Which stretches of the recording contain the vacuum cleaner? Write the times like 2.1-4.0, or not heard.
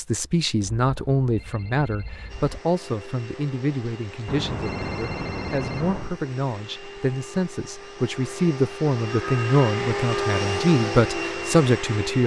2.2-12.2.